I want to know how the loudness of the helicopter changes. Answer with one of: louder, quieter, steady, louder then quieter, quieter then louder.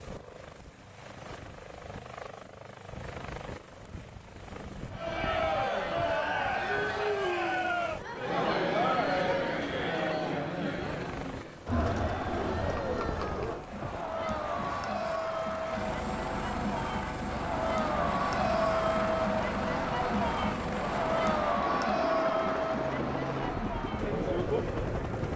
louder.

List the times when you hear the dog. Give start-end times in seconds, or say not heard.
not heard.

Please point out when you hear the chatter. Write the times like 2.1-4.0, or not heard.
4.9-25.3.